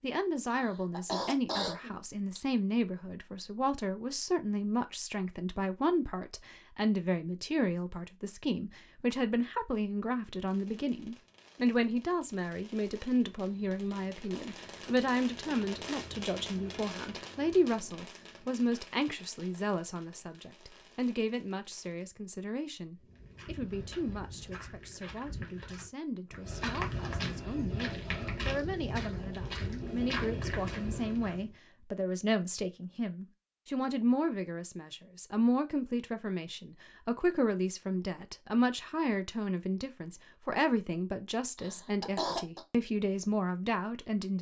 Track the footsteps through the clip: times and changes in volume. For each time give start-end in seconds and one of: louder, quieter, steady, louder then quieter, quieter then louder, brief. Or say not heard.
23.0-31.6 louder.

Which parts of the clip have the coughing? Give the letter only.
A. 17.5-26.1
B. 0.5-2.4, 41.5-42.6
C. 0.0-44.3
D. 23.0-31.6
B.